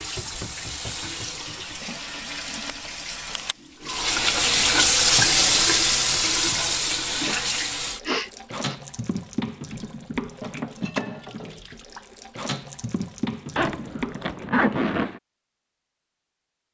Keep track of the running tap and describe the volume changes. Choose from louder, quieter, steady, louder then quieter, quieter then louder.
louder then quieter.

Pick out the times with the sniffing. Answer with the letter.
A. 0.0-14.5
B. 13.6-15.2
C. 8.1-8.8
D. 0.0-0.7
C.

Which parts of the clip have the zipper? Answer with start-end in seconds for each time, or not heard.
13.6-15.2.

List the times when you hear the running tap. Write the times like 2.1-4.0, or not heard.
0.0-14.5.